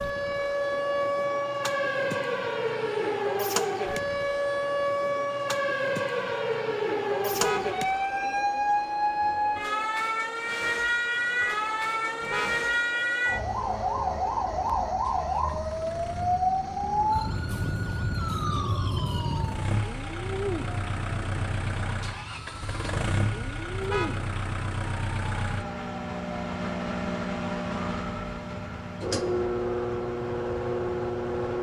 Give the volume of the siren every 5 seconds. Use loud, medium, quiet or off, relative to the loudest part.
loud, loud, loud, loud, quiet, quiet, quiet.